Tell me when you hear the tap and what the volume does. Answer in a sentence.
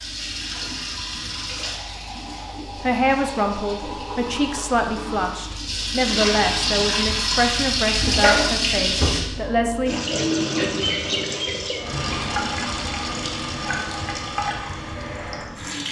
You can hear the tap from 0.0 to 15.8 s, getting louder then quieter.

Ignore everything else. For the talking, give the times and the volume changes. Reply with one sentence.
You can hear the talking from 2.8 to 10.1 s, at a steady volume.